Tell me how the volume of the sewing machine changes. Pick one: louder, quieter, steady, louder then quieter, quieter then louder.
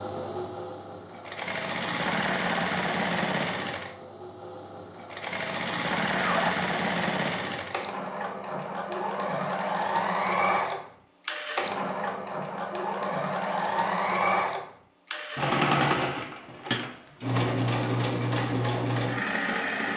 steady.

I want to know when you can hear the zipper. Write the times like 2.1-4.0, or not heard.
6.2-6.7.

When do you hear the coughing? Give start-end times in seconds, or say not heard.
not heard.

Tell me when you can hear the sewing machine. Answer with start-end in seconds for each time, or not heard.
0.0-19.9.